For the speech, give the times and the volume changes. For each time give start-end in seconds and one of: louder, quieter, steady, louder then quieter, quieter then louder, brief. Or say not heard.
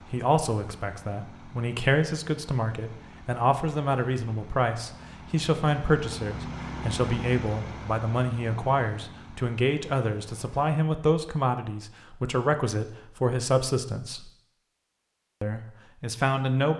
0.1-14.2 steady
15.4-16.7 brief.